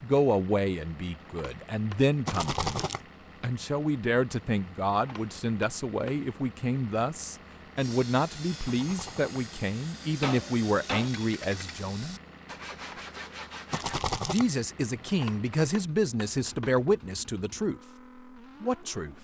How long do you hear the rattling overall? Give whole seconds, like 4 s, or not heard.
2 s.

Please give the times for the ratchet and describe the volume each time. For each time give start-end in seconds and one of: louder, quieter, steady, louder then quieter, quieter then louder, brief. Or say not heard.
not heard.